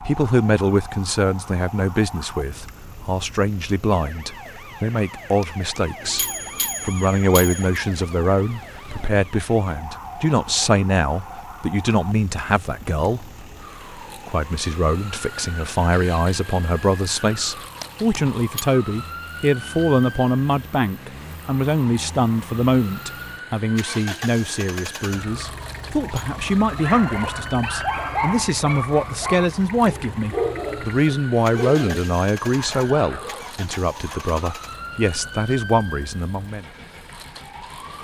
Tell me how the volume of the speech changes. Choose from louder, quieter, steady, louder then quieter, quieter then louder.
steady.